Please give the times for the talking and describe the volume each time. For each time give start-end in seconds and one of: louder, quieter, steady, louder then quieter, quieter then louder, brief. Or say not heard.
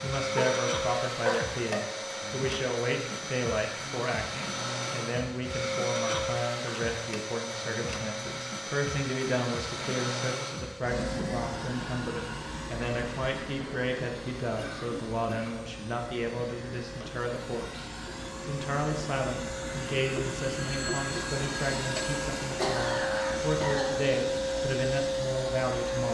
0.0-26.0 steady.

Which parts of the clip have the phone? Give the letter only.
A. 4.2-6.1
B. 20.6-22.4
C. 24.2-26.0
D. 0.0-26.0
B.